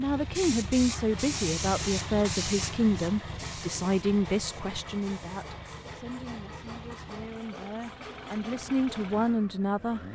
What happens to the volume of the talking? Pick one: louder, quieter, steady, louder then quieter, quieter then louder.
quieter then louder.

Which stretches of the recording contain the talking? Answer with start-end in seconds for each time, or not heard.
0.0-10.0.